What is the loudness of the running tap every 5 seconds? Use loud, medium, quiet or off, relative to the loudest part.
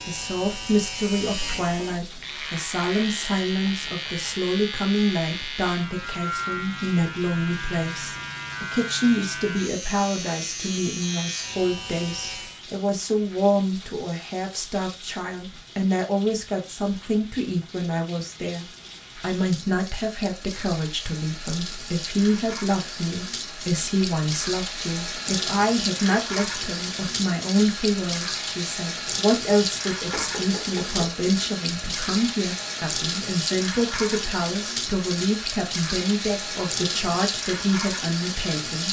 quiet, quiet, quiet, quiet, medium, loud, loud, loud.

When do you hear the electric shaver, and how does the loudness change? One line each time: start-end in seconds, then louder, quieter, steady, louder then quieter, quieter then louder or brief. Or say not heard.
0.0-12.6 steady.